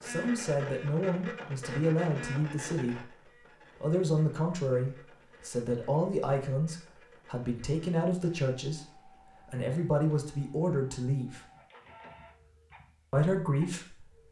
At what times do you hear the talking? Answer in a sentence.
The talking can be heard from 0.0 to 3.1 s, from 3.8 to 8.8 s, from 9.4 to 11.4 s and from 13.1 to 14.2 s.